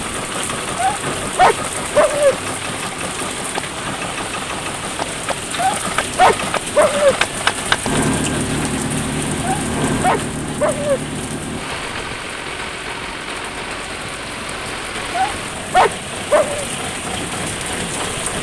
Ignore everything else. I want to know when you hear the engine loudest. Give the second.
8 s.